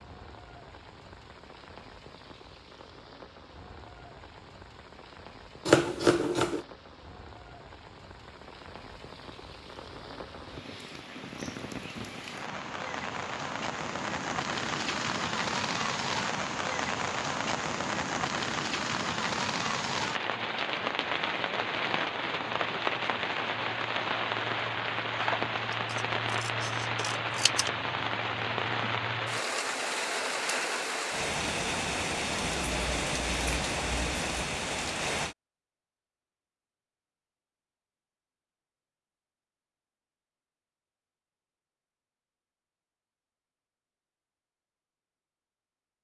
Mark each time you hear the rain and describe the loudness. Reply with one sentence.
The rain can be heard from 0.0 to 35.4 s, getting louder.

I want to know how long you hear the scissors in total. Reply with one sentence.
The scissors can be heard for 4 seconds in total.